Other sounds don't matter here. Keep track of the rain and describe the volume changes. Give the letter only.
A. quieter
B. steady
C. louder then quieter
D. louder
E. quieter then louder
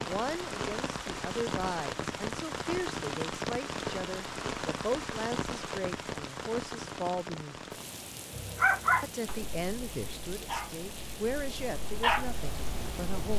A.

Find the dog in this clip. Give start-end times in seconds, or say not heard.
8.3-13.3.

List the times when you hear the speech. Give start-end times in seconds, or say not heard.
0.0-7.5, 9.0-13.3.